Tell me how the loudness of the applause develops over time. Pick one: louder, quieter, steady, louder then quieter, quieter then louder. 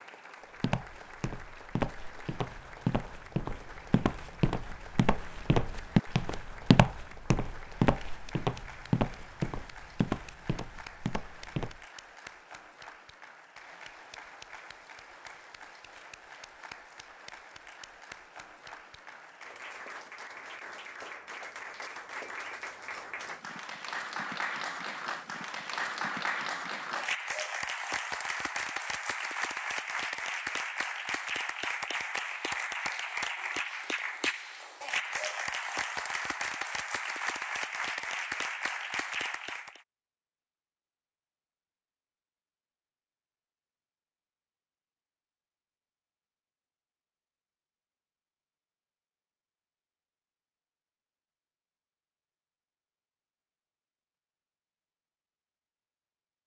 louder.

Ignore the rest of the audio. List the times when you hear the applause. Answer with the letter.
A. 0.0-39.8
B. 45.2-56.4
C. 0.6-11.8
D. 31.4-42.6
A.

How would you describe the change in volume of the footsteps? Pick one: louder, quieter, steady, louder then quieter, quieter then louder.
louder then quieter.